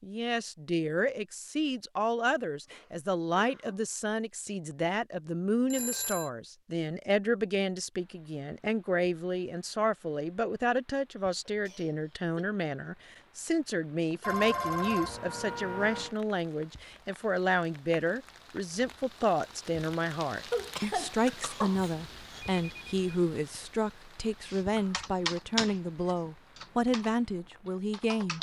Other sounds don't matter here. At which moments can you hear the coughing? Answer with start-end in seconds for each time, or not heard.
2.6-3.8, 11.2-12.4, 20.5-22.4.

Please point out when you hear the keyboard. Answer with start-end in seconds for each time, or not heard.
24.4-28.3.